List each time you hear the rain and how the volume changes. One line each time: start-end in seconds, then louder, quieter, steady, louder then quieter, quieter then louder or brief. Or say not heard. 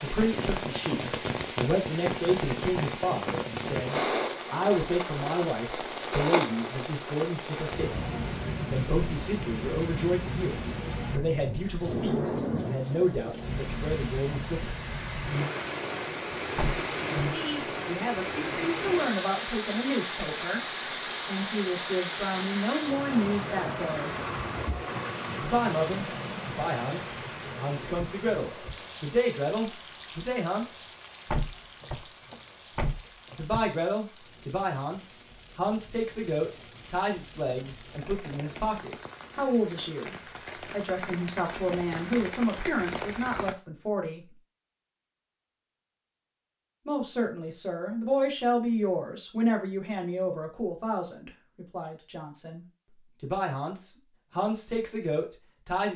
0.0-43.5 quieter.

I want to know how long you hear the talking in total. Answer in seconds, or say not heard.
47 s.